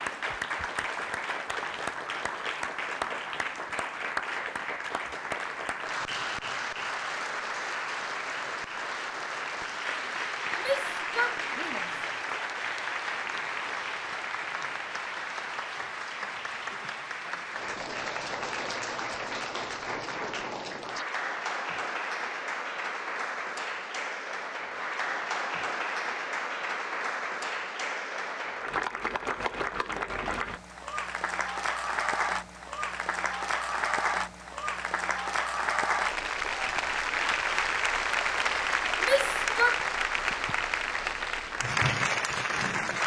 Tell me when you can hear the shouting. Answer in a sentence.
You can hear the shouting from 10.6 to 11.9 s and from 39.0 to 39.8 s.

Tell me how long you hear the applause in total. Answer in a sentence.
The applause can be heard for 43 seconds in total.